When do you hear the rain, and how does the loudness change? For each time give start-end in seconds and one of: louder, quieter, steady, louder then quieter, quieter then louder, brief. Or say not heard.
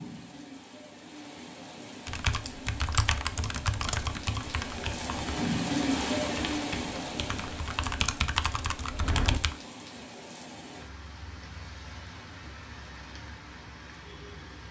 0.0-14.6 louder then quieter.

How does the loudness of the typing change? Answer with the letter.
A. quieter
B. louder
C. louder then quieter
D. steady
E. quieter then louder
E.